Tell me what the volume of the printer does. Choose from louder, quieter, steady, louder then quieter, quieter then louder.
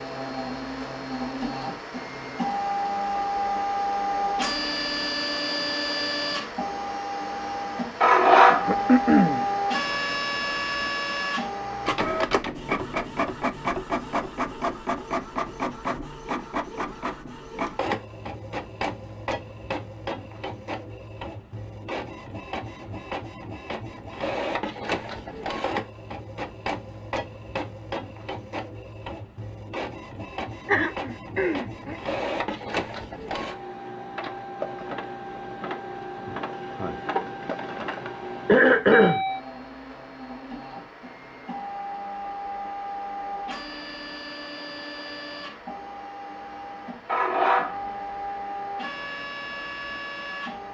quieter.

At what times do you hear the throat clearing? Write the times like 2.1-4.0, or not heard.
8.7-9.4, 30.6-31.9, 38.5-39.2.